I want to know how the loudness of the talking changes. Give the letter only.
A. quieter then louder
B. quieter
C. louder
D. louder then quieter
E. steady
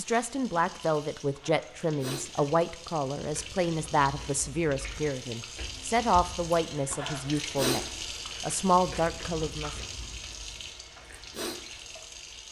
E.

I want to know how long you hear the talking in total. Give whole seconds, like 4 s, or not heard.
10 s.